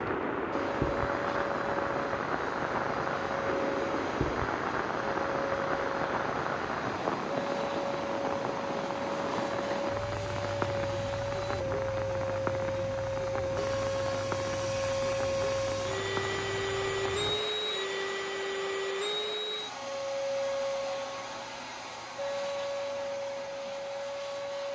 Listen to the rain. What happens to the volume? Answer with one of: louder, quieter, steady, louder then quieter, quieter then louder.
quieter.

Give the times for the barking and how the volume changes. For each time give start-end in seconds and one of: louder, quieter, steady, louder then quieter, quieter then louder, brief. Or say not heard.
not heard.